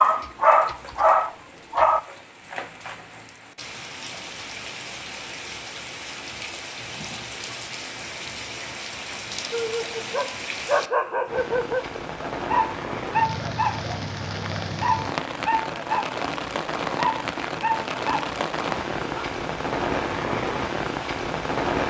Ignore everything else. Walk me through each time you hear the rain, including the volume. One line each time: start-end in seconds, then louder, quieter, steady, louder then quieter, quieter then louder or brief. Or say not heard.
0.0-21.8 louder.